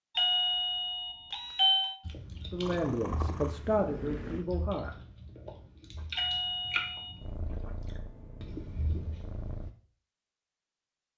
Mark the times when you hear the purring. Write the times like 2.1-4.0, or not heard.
2.5-4.5, 7.2-9.8.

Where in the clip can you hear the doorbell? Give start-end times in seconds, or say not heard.
0.1-1.9, 6.2-7.2.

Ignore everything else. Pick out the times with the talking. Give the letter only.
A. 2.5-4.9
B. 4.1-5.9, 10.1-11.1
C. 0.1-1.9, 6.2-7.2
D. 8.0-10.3
A.